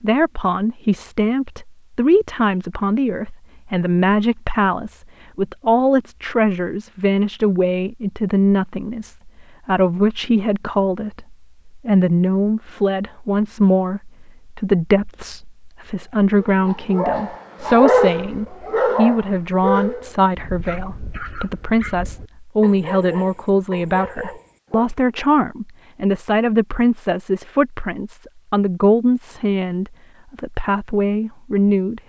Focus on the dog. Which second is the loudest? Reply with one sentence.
The volume of the dog peaks at 18 seconds.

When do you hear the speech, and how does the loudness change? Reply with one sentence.
The speech can be heard from 0.0 to 32.0 s, at a steady volume.